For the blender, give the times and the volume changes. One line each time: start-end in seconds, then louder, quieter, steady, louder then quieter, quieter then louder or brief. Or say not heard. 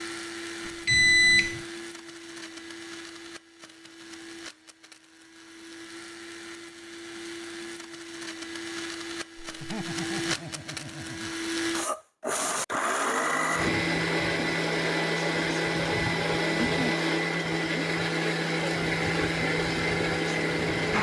0.0-20.9 louder.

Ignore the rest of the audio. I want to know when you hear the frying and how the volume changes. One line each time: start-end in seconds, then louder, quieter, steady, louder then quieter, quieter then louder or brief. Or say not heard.
not heard.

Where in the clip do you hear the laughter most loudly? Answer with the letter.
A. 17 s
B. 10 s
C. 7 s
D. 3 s
B.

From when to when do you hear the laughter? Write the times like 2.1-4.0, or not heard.
9.4-11.3.